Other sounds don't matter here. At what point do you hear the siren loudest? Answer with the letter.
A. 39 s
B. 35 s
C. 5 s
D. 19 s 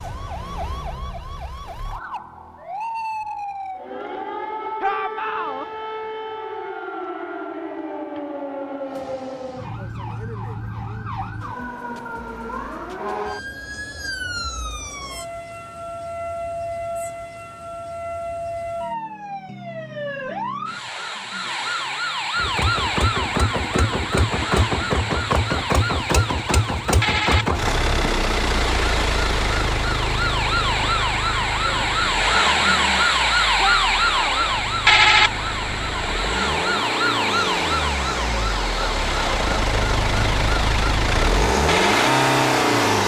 B.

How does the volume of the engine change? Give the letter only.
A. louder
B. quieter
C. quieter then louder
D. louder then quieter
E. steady
C.